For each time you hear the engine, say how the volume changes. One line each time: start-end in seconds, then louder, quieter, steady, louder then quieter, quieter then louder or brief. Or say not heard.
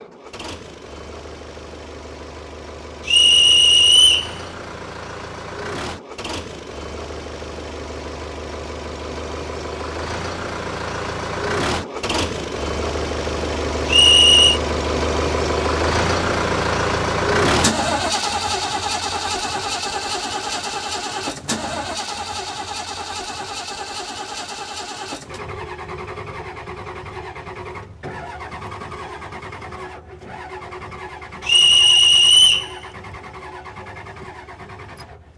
0.0-35.3 louder then quieter.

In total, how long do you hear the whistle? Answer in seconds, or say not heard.
3 s.